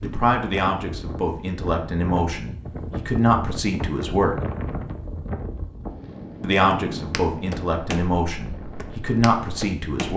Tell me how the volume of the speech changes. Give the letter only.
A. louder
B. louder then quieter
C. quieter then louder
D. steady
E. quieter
D.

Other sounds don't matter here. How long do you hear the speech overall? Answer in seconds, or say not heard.
8 s.